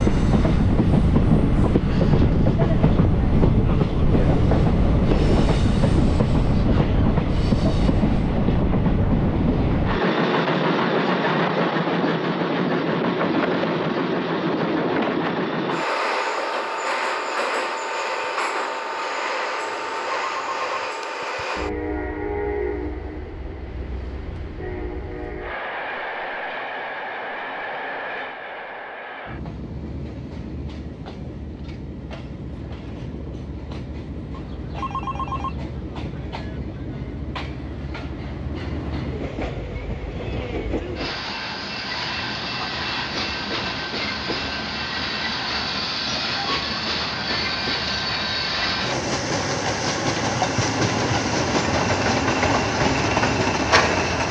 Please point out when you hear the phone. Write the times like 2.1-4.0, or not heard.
19.6-20.9, 34.3-35.6.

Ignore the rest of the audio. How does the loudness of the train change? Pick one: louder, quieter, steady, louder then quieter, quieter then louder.
quieter then louder.